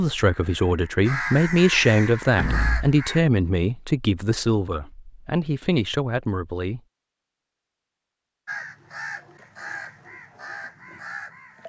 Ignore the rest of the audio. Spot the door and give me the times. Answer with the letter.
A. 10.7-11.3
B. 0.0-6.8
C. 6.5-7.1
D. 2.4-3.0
D.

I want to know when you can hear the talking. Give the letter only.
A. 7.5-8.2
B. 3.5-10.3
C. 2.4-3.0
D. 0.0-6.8
D.